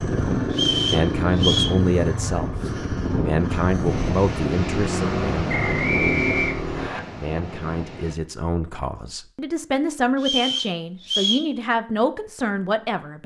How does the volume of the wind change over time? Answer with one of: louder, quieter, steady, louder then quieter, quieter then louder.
quieter.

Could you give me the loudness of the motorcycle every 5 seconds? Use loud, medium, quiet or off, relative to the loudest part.
loud, loud, off.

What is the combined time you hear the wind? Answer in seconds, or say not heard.
8 s.